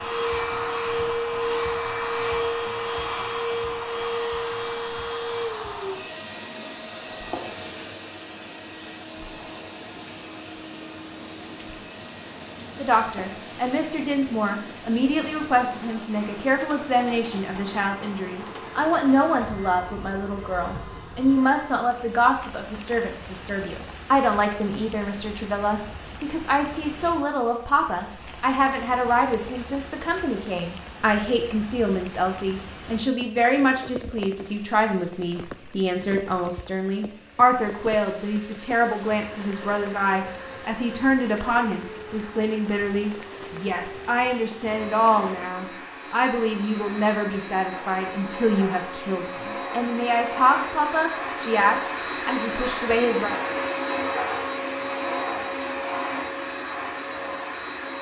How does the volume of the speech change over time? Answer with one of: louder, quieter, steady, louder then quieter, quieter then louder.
steady.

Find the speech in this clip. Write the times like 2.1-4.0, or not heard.
12.8-53.4.